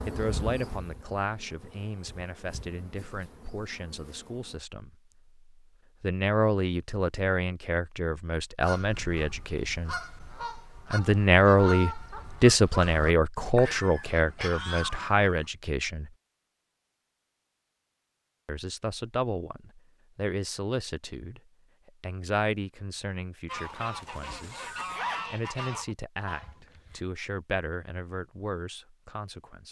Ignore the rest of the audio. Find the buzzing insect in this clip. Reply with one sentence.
You can hear the buzzing insect from 0.0 to 4.6 s.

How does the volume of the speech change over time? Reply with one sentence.
The loudness of the speech goes up, then down.